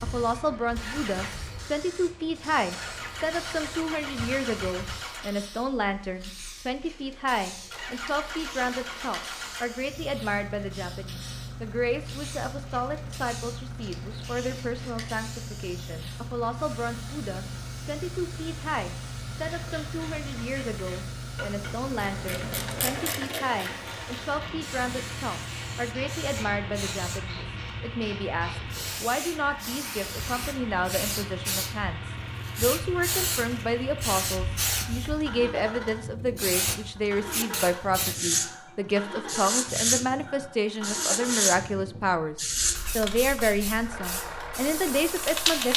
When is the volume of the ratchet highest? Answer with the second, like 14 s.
23 s.